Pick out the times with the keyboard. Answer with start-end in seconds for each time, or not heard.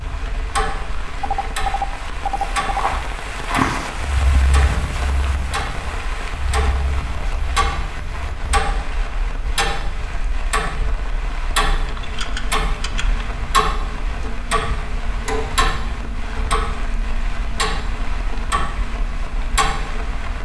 11.8-13.2.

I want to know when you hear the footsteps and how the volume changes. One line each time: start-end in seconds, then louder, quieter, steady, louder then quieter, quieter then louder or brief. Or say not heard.
2.3-8.4 quieter.